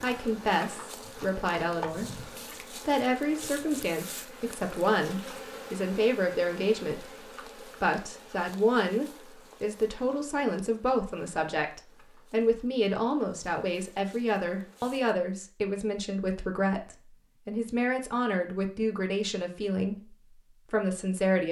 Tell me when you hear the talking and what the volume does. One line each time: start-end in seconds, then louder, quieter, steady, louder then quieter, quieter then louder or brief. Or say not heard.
0.0-21.4 steady.